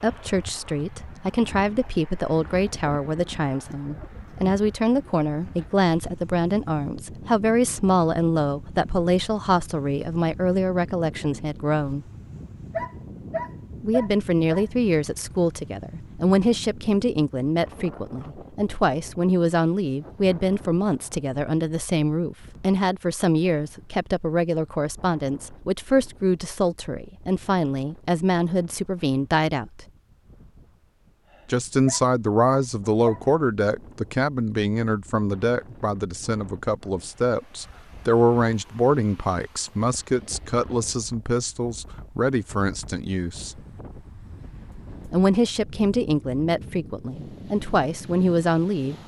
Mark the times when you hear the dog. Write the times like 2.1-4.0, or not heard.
12.7-14.7, 31.9-33.2.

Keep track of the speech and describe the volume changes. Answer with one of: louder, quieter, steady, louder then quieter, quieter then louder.
steady.